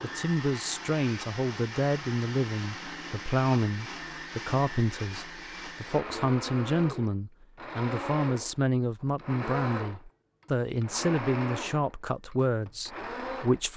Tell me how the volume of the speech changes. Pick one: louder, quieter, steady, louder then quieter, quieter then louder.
steady.